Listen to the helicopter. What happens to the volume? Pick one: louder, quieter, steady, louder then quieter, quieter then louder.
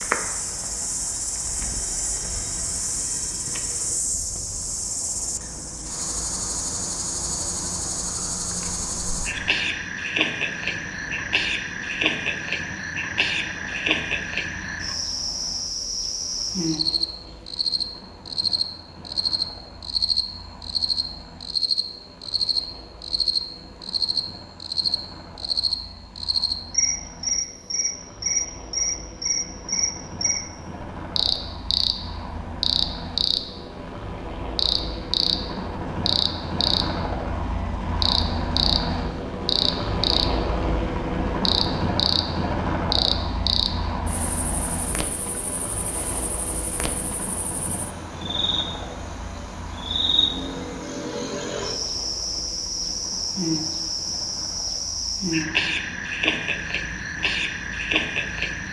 louder then quieter.